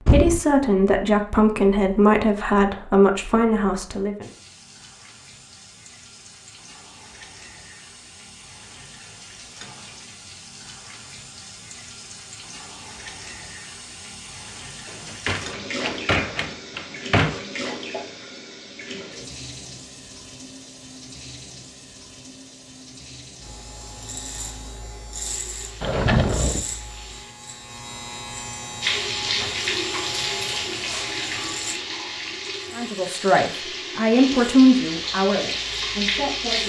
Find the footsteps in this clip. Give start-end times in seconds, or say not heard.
not heard.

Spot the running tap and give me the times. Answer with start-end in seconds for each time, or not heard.
4.2-27.4, 28.8-36.6.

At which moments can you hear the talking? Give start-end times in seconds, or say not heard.
0.0-4.3, 32.8-36.6.